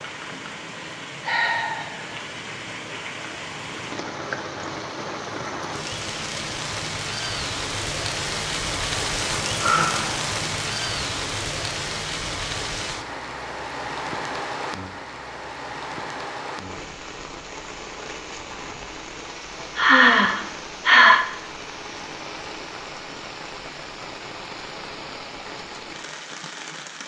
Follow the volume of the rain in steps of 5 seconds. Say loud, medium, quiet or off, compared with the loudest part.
medium, loud, loud, medium, medium, medium.